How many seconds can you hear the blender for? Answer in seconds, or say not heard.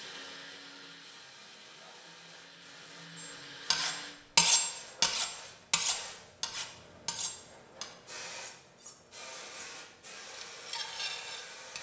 4 s.